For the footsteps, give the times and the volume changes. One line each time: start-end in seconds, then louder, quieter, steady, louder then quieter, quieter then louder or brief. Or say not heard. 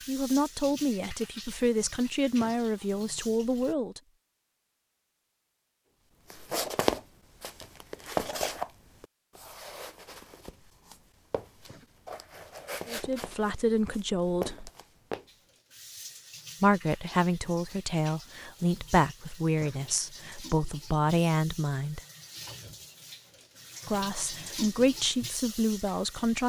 6.3-15.2 quieter then louder.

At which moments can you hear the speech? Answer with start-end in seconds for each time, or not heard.
0.1-4.0, 12.8-14.7, 16.6-22.0, 23.9-26.4.